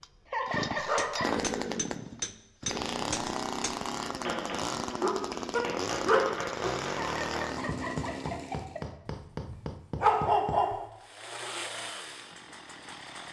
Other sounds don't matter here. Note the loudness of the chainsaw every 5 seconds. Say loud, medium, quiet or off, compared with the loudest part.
loud, loud, medium.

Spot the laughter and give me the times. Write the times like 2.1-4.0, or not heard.
0.2-1.3, 6.9-8.8.